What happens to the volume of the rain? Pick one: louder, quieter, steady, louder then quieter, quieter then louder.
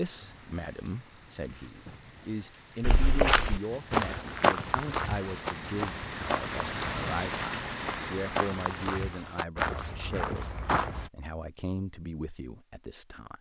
louder.